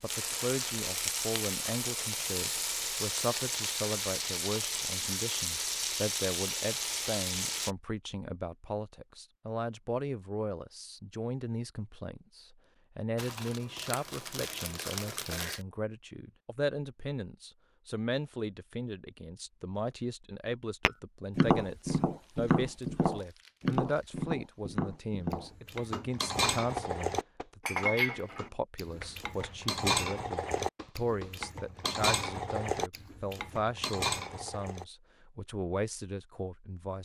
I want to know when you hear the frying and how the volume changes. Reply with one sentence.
The frying can be heard from 0.0 to 7.8 s, at a steady volume.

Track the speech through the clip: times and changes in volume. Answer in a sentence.
The speech can be heard from 0.0 to 36.9 s, at a steady volume.